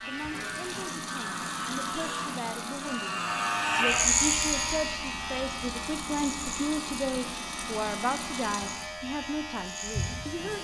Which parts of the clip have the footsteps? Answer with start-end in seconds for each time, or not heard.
not heard.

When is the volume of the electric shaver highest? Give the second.
4 s.